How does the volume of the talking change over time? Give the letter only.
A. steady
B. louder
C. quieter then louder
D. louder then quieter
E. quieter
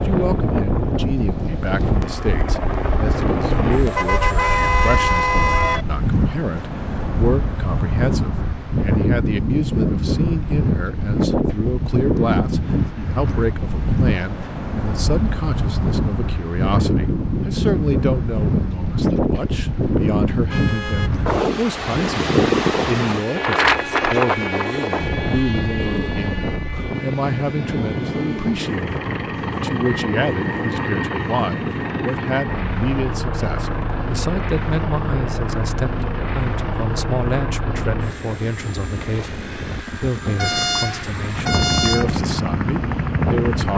A.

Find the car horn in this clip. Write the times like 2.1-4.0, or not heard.
3.9-5.8, 20.5-21.1, 40.4-42.1.